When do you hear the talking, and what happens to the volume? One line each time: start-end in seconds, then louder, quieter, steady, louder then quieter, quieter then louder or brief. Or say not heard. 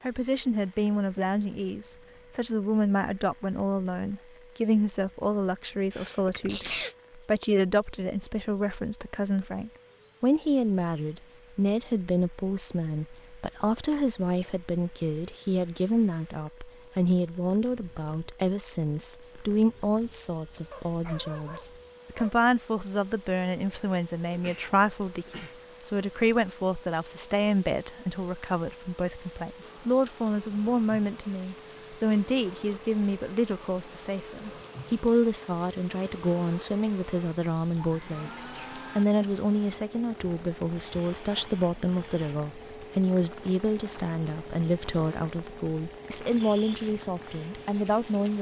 0.0-48.3 steady.